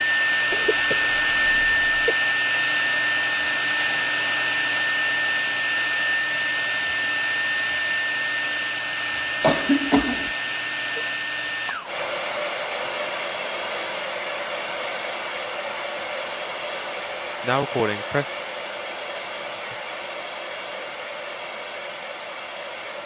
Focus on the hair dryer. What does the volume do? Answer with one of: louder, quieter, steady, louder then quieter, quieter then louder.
quieter.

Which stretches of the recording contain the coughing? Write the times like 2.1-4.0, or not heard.
0.5-2.1, 9.4-10.3, 17.4-18.2.